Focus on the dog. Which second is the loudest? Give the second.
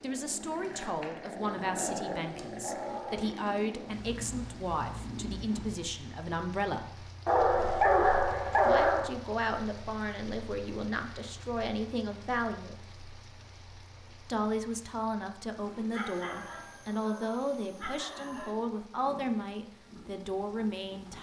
8 s.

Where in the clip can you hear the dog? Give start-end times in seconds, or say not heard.
1.4-3.4, 7.2-9.1, 15.9-18.6.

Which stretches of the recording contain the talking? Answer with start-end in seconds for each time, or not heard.
0.0-7.1, 8.7-12.8, 14.2-21.1.